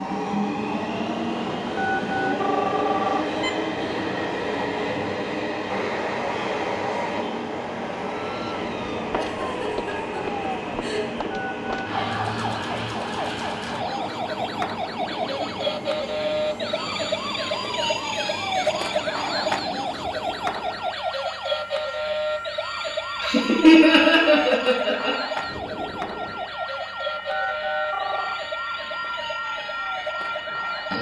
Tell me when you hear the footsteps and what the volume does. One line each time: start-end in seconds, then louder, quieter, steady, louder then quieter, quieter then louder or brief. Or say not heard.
not heard.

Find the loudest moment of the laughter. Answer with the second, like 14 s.
24 s.